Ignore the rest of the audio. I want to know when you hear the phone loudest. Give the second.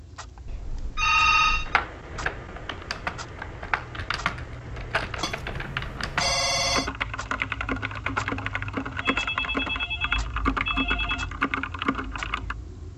1 s.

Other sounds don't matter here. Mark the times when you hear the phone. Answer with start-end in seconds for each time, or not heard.
0.5-1.8, 5.2-6.9, 9.0-11.3.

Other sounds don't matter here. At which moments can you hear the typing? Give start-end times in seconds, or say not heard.
1.6-12.6.